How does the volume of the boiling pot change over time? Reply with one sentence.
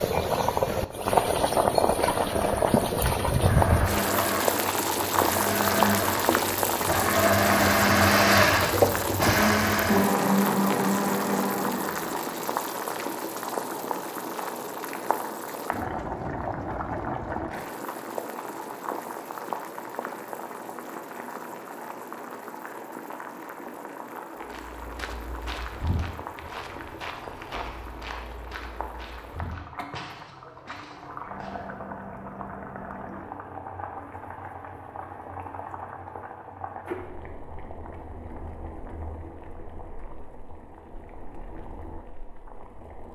The loudness of the boiling pot goes down.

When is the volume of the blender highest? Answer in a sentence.
The loudest moment of the blender is at 8 seconds.